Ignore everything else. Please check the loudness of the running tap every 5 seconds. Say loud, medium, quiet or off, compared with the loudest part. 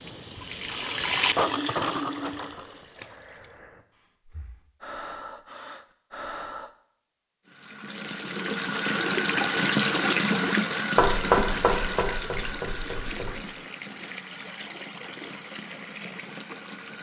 loud, loud, loud, quiet.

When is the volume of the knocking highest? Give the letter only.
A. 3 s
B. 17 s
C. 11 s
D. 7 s
C.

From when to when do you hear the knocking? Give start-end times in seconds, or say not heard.
10.9-13.3.